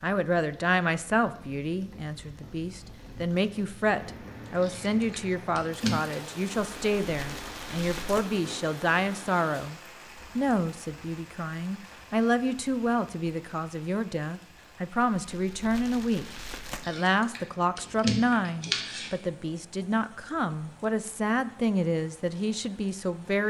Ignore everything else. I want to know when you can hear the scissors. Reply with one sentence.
The scissors can be heard from 4.5 to 6.2 s and from 16.8 to 19.1 s.